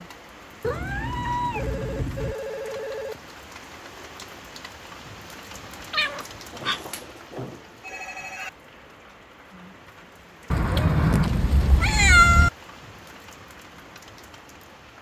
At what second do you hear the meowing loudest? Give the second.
12 s.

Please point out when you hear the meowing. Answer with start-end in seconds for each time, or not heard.
0.6-2.4, 5.5-7.0, 10.5-12.5.